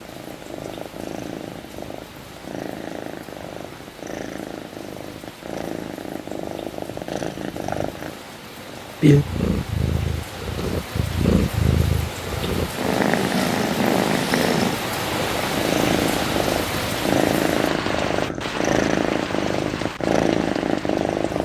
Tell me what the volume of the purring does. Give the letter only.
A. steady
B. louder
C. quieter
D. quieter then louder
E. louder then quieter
B.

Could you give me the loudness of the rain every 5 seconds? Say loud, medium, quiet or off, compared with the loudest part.
quiet, quiet, loud, loud, medium.